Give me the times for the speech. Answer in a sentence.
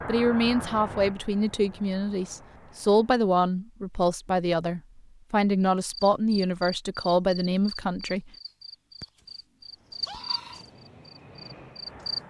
The speech can be heard from 0.1 to 8.3 s.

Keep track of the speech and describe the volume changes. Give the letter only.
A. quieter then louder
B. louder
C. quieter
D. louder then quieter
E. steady
E.